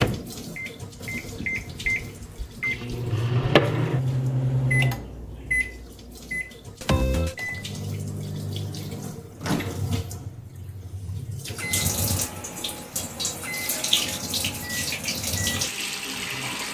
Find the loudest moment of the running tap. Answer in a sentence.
The loudest moment of the running tap is at 14 seconds.